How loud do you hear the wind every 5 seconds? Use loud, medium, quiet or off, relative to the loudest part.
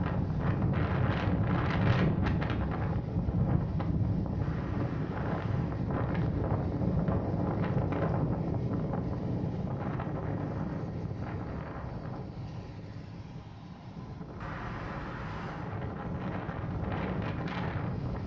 loud, loud, medium, medium.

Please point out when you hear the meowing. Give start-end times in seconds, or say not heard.
4.4-5.8, 14.4-15.8.